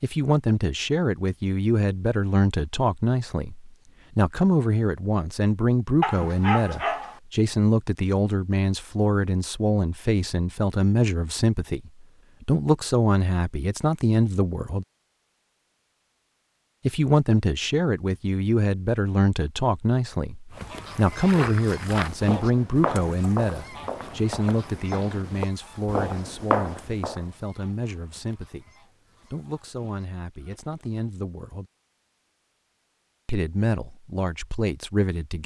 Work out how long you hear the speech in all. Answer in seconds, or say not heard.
31 s.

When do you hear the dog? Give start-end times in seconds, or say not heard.
6.0-7.2.